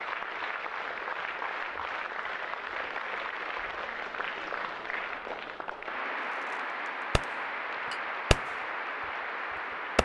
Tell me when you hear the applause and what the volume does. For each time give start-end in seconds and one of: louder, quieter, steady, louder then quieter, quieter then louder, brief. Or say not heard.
0.0-10.0 steady.